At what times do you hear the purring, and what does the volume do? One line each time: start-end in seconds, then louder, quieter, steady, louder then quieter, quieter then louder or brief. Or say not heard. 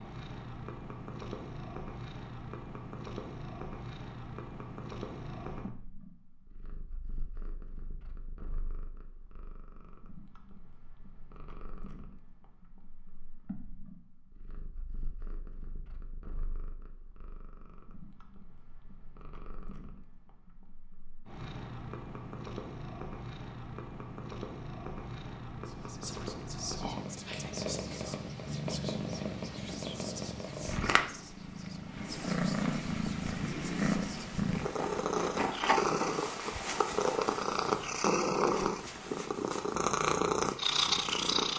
0.0-41.5 quieter then louder.